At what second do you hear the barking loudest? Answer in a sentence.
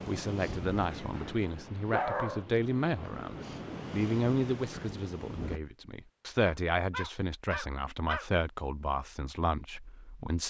The volume of the barking peaks at 2 seconds.